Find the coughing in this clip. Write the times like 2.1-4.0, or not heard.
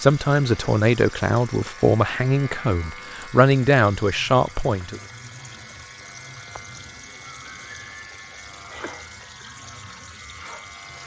8.8-9.4.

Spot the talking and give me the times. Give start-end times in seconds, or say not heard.
0.0-5.0.